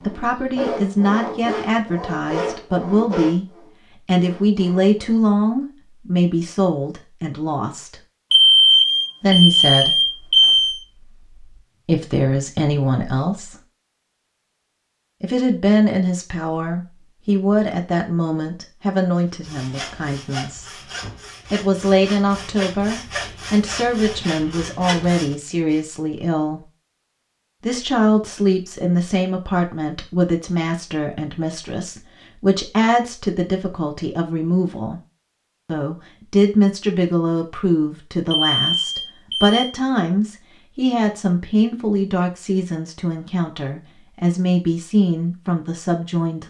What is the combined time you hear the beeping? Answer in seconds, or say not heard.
4 s.